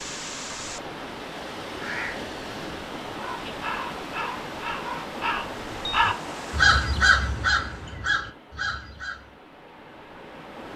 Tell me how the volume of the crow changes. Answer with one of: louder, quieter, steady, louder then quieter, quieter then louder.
louder then quieter.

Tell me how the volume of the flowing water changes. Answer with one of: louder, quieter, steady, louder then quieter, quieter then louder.
quieter.